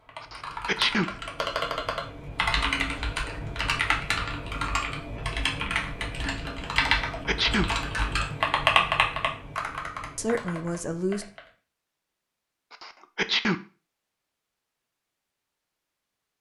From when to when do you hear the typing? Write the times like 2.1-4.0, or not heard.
0.0-11.5.